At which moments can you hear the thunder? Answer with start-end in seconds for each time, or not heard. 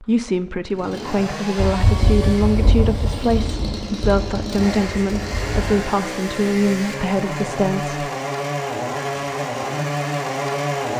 1.6-5.9.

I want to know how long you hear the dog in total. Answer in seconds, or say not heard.
not heard.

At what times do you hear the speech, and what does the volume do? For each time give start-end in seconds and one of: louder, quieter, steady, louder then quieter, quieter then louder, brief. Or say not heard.
0.0-8.1 steady.